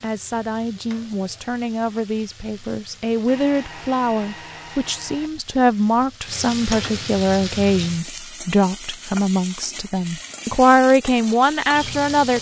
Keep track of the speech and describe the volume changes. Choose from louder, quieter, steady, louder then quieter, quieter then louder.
louder.